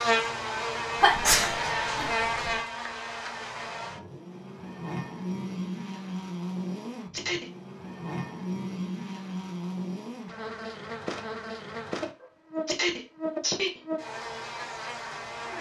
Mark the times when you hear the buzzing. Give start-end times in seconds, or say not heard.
0.0-15.5.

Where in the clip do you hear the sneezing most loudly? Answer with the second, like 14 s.
1 s.